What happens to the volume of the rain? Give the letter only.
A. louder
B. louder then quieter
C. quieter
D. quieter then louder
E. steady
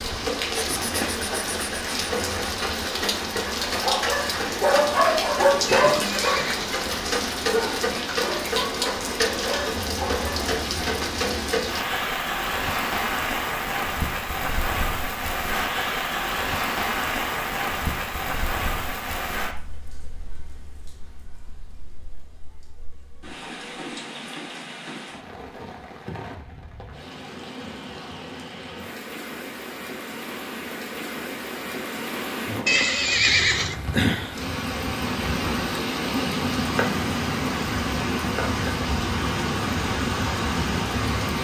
D.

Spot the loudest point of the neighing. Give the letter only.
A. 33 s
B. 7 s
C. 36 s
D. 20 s
A.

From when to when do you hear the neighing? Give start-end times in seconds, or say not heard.
5.7-6.8, 32.6-33.8.